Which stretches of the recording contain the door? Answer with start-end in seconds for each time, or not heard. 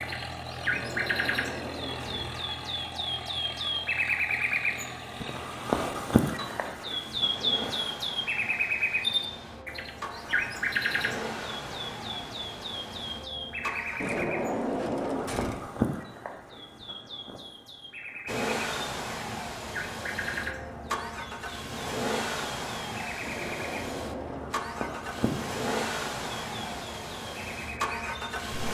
0.7-2.4, 13.9-15.7, 23.2-24.7.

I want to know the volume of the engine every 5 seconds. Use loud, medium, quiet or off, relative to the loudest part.
medium, medium, medium, loud, loud, loud.